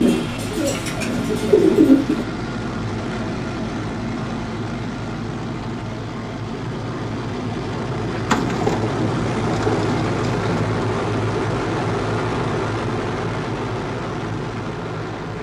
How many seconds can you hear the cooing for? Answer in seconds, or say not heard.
5 s.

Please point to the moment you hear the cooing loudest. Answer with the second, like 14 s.
2 s.